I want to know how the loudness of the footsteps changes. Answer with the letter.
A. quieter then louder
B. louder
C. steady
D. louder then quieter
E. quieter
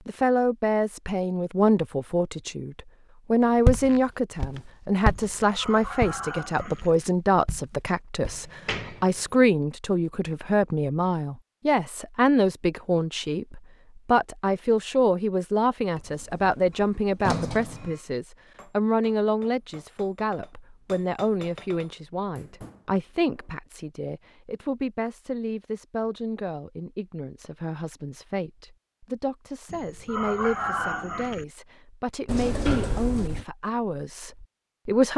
D.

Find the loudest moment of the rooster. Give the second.
31 s.